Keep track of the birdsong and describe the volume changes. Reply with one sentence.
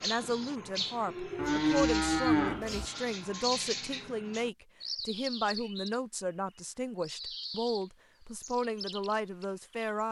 The loudness of the birdsong goes down.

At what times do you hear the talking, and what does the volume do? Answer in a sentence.
You can hear the talking from 0.0 to 10.0 s, at a steady volume.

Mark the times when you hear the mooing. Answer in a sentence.
The mooing can be heard from 1.4 to 2.9 s.